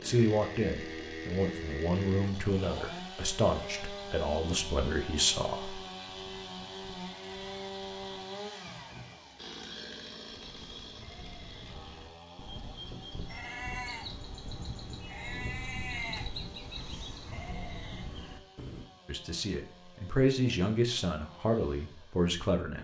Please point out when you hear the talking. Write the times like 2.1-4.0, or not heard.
0.0-5.8, 19.1-22.7.